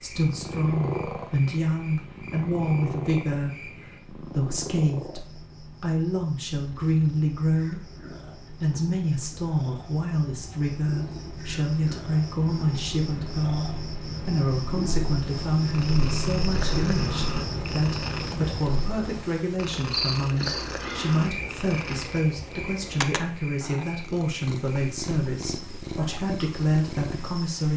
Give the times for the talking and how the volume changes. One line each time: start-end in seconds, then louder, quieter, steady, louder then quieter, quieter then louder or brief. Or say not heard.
0.0-27.7 steady.